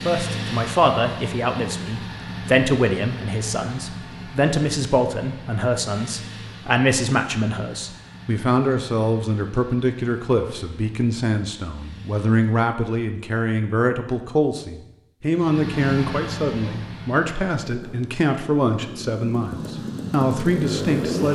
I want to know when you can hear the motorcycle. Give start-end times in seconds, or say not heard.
0.0-12.6, 15.3-21.3.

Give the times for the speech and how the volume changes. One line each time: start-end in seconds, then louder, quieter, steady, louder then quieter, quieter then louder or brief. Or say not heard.
0.1-21.3 steady.